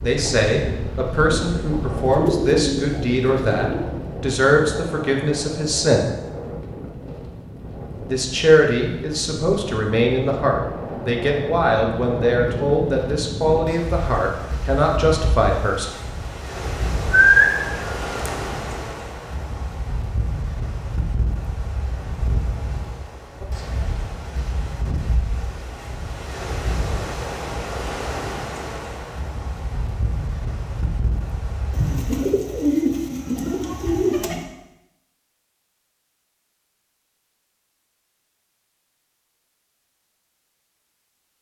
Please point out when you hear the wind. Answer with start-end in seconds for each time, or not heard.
0.0-32.2.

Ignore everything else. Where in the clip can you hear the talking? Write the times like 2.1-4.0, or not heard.
0.0-6.1, 8.1-15.9.